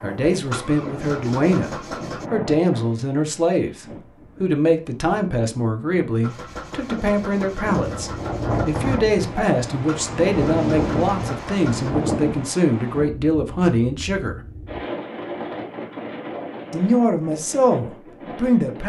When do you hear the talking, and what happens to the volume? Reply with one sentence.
You can hear the talking from 0.0 to 14.3 s, at a steady volume; and briefly from 16.7 to 18.8 s.